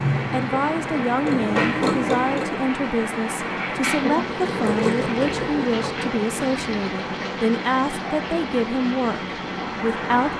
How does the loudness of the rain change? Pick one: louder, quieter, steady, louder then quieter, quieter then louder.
steady.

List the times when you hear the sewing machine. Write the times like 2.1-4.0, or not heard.
0.0-2.6, 4.3-6.2.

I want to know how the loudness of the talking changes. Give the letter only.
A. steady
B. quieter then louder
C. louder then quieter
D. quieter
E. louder
A.